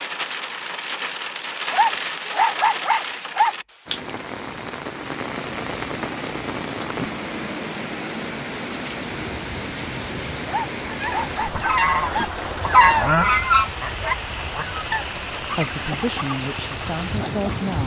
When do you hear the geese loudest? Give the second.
13 s.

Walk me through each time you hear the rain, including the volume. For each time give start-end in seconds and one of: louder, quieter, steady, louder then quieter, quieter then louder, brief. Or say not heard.
0.0-17.8 steady.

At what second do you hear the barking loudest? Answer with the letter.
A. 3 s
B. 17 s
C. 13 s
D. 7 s
A.